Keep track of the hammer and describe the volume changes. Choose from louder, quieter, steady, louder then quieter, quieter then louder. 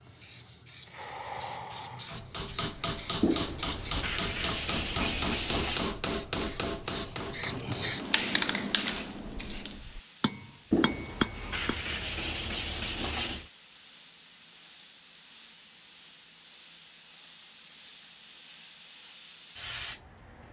quieter then louder.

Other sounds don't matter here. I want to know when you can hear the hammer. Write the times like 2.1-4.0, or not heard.
2.0-11.8.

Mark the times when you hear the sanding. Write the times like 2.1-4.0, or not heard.
3.2-6.0, 10.7-13.5.